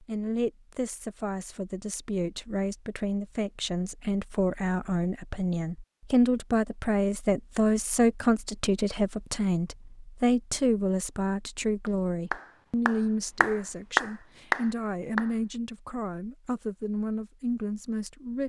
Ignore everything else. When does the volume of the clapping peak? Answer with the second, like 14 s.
14 s.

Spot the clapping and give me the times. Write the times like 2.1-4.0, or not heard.
11.8-15.3.